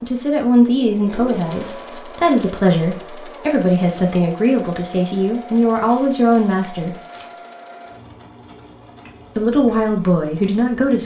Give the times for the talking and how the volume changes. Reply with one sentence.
You can hear the talking from 0.0 to 7.0 s, at a steady volume; and briefly from 9.3 to 11.0 s.